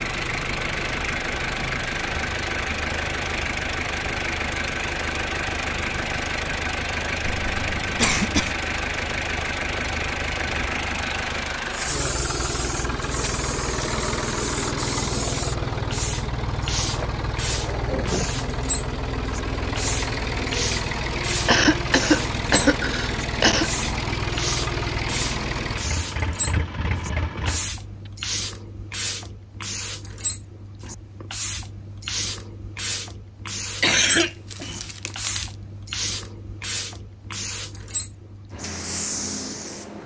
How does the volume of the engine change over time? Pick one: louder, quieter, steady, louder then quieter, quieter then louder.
steady.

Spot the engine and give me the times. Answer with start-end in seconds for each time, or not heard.
0.0-28.1.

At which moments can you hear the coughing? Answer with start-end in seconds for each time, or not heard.
7.2-8.5, 21.4-23.7, 33.8-35.5.